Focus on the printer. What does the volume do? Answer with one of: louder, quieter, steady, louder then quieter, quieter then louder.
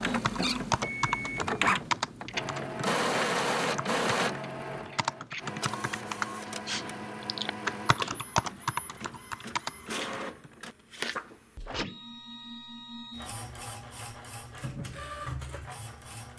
quieter.